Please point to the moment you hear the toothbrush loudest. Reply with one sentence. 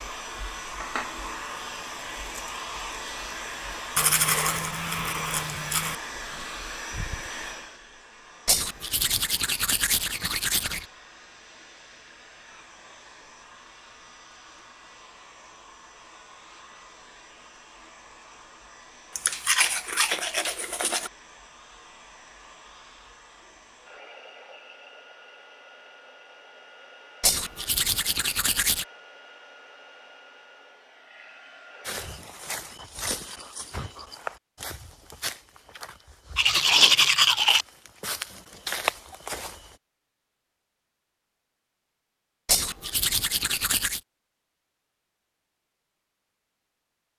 The loudest moment of the toothbrush is at 37 seconds.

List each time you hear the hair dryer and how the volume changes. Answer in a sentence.
You can hear the hair dryer from 0.0 to 32.4 s, getting quieter.